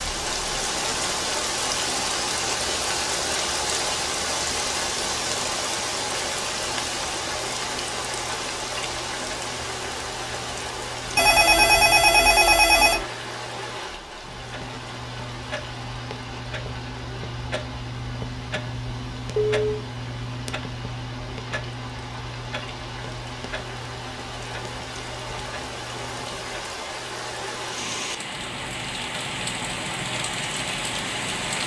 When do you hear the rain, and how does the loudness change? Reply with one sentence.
The rain can be heard from 0.0 to 31.6 s, getting quieter then louder.